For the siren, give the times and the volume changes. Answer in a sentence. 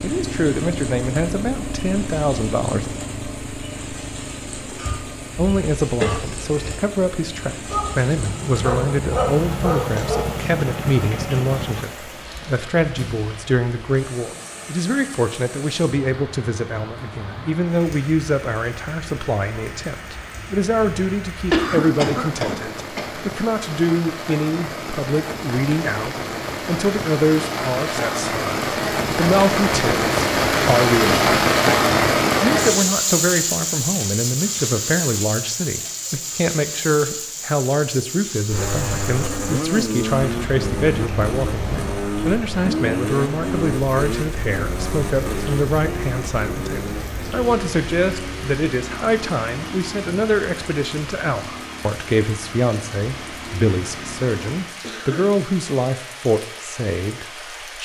You can't hear the siren here.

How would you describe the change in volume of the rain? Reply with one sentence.
The loudness of the rain goes up, then down.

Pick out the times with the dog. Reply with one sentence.
The dog can be heard from 7.7 to 10.4 s.